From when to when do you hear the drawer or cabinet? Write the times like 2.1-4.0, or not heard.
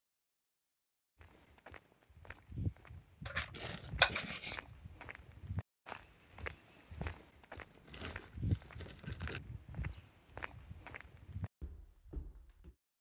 not heard.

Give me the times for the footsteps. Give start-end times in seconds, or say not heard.
1.2-12.8.